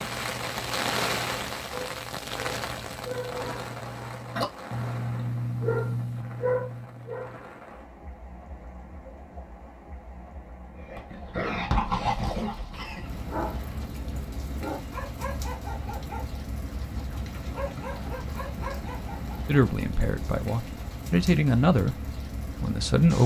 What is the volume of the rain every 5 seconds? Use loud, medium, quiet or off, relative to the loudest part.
loud, quiet, medium, medium, medium.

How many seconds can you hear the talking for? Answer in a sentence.
The talking can be heard for 3 seconds in total.